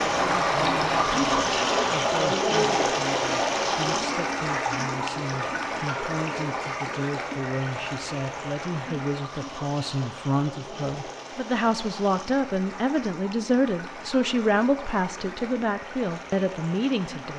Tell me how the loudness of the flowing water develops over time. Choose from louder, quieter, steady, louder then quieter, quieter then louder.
quieter.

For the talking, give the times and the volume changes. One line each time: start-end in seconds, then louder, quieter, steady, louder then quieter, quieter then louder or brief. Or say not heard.
0.1-17.3 louder.